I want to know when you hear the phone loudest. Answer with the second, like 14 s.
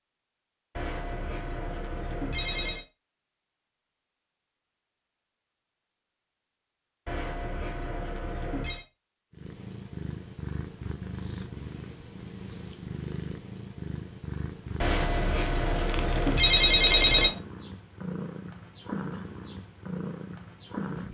17 s.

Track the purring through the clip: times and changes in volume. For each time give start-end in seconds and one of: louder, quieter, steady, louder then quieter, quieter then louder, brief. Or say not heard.
9.3-21.0 steady.